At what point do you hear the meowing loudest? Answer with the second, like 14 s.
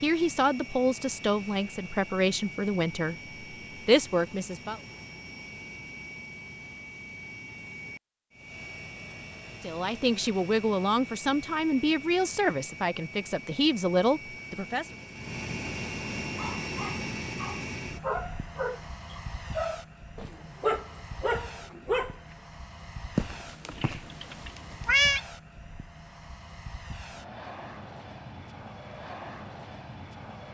25 s.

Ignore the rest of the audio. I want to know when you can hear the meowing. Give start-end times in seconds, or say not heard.
23.1-25.2.